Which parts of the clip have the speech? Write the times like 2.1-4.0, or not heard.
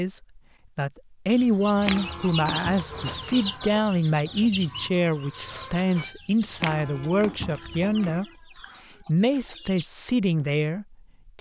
0.0-8.2, 9.1-11.3.